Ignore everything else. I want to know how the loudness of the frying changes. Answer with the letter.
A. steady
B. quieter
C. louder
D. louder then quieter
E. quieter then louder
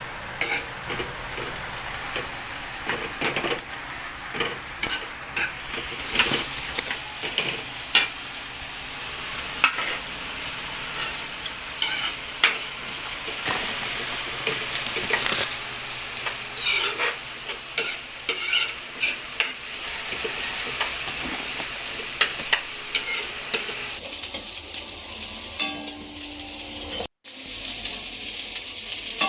A.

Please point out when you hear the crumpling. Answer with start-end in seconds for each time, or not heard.
6.0-7.0, 13.4-15.4, 21.1-22.6.